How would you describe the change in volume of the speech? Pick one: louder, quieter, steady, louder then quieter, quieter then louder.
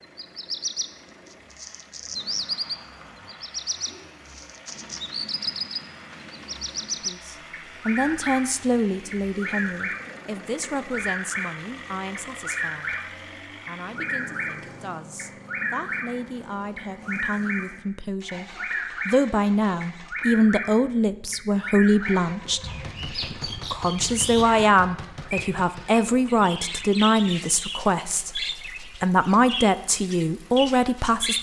quieter then louder.